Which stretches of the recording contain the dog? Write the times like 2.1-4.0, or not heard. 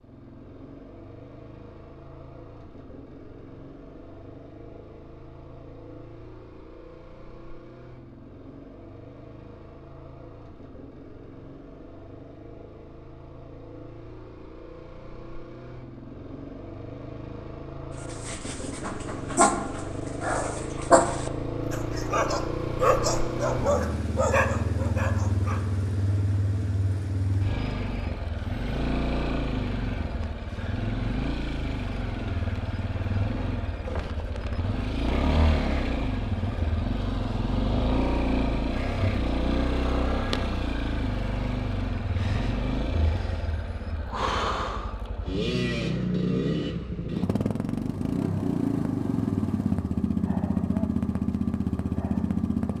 18.0-25.7.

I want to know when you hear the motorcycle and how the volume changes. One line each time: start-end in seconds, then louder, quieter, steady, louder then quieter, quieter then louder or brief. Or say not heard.
0.0-52.7 louder.